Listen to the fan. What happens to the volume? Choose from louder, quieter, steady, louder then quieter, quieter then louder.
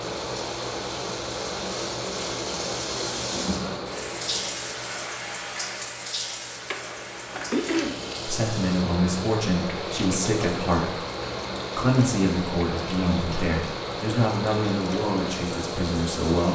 quieter then louder.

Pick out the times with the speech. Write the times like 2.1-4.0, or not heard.
8.2-10.9, 11.8-16.5.